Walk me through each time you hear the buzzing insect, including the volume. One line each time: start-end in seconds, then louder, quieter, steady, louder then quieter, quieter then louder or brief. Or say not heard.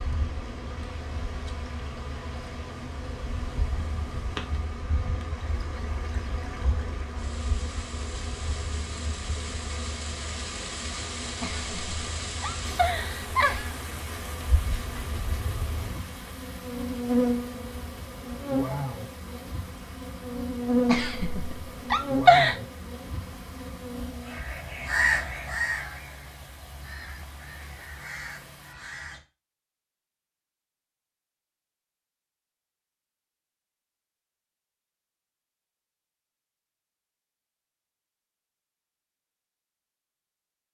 0.0-24.4 louder.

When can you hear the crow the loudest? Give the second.
25 s.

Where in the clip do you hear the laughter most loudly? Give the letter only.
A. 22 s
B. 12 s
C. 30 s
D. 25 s
A.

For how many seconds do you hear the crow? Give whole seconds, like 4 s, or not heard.
5 s.